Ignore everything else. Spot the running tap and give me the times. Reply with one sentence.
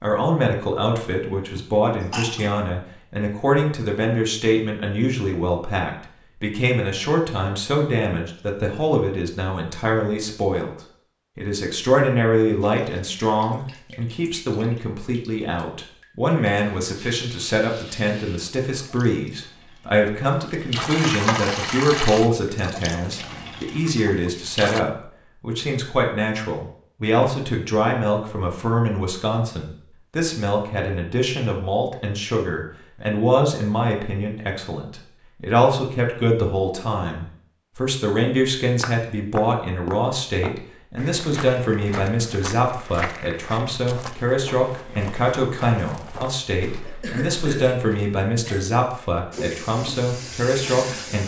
You can hear the running tap from 12.6 to 24.8 s and from 49.3 to 51.2 s.